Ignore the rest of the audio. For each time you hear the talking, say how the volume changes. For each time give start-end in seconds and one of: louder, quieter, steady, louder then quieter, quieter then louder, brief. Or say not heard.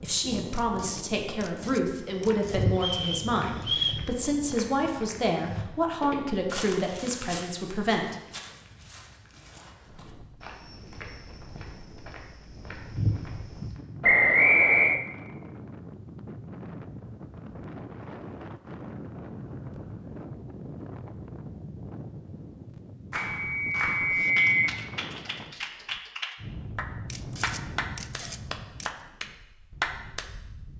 0.0-8.2 steady.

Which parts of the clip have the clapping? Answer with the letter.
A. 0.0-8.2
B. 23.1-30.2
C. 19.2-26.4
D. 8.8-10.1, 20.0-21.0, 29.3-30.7
B.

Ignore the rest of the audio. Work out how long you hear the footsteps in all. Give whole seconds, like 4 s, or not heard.
12 s.